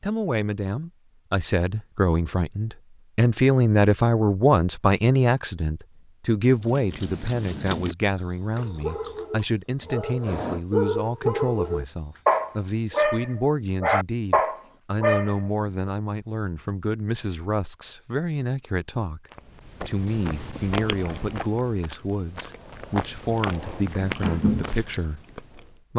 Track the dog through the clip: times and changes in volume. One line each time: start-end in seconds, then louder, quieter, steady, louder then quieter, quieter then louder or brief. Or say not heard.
8.6-15.5 louder.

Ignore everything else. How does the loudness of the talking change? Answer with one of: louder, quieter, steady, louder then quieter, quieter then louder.
quieter.